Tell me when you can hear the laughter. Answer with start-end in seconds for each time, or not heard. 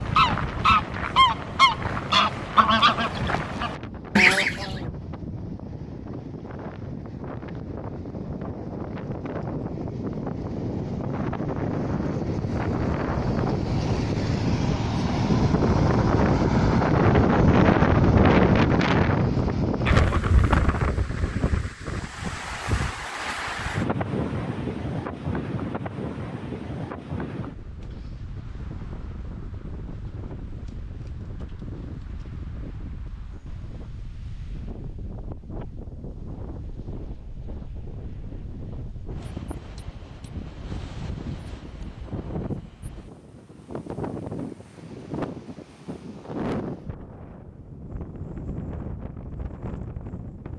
not heard.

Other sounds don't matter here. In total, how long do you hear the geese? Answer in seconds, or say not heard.
5 s.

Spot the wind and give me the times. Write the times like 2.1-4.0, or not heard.
0.0-50.5.